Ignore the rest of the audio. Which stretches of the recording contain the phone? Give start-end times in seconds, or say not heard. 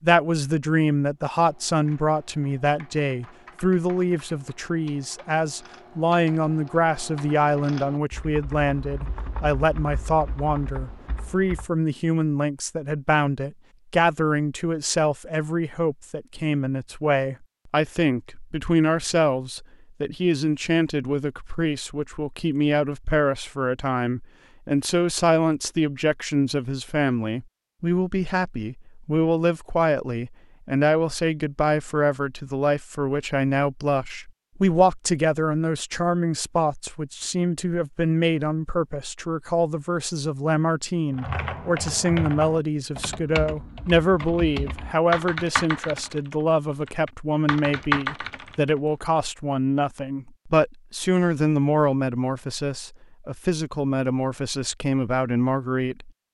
not heard.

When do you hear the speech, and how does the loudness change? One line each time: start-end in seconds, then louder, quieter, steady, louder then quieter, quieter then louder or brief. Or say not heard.
0.0-56.1 steady.